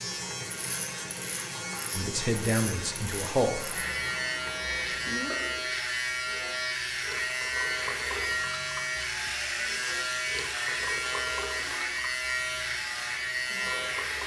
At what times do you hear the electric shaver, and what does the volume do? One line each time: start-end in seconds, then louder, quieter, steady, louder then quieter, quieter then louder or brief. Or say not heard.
0.0-14.2 louder.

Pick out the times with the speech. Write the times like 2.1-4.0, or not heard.
1.9-3.6.